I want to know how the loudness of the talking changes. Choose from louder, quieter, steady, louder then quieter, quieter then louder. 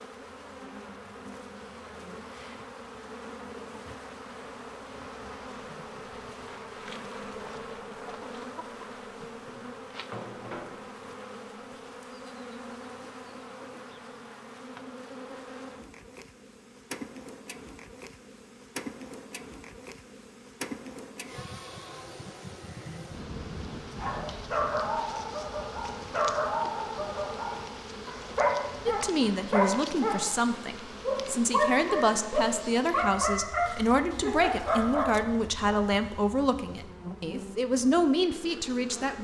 steady.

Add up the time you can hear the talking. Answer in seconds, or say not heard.
10 s.